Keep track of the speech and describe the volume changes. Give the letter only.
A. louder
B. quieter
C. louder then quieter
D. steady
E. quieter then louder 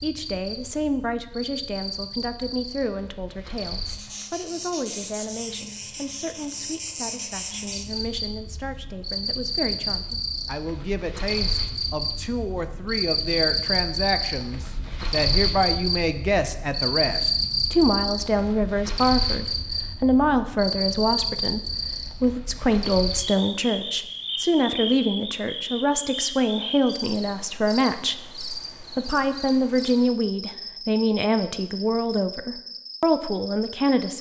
A.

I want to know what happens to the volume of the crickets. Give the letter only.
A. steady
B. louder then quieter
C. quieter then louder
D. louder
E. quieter
B.